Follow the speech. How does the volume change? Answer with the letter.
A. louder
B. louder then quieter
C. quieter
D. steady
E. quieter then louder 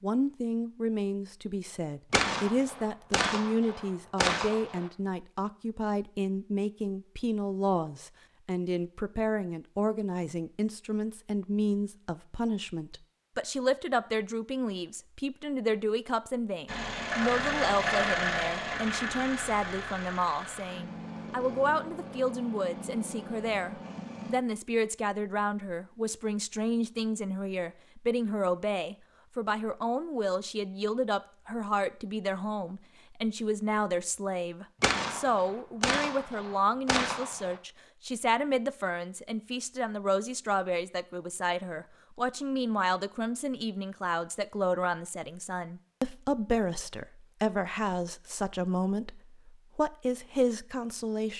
D.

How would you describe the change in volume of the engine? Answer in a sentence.
The volume of the engine goes down.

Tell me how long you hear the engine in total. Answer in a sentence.
The engine can be heard for 8 seconds in total.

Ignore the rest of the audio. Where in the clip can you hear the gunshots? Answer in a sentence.
You can hear the gunshots from 2.1 to 4.9 s and from 34.8 to 37.5 s.